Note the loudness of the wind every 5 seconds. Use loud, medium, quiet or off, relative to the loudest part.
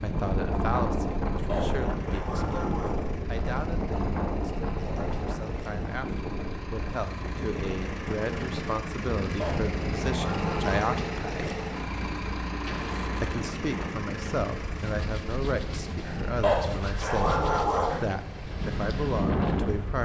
loud, medium, medium, loud.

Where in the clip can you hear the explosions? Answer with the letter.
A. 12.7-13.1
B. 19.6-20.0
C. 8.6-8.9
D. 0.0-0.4
A.